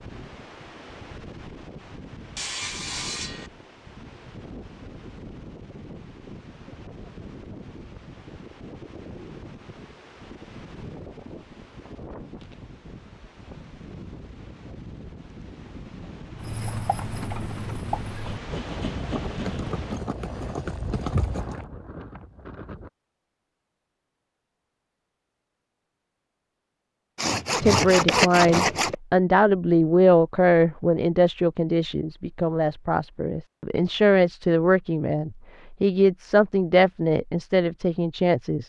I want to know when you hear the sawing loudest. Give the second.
28 s.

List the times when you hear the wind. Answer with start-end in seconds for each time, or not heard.
0.0-22.9.